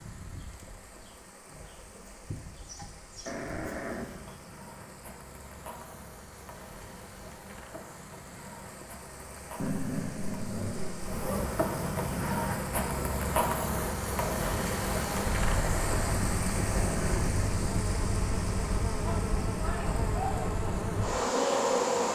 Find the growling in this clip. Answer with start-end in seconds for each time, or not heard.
3.2-4.5, 9.6-11.3, 15.5-17.4.